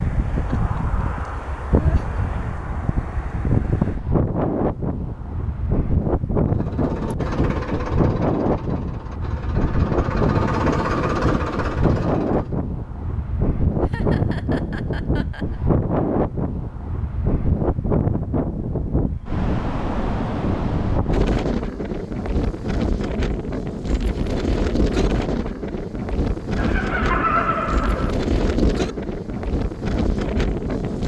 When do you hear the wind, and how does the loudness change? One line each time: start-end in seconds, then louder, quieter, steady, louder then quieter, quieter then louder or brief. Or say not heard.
0.0-31.0 steady.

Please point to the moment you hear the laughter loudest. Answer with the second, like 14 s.
27 s.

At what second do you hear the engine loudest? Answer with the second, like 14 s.
11 s.